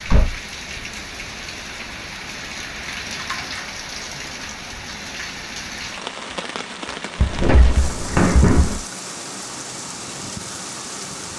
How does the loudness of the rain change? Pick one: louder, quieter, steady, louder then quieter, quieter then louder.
steady.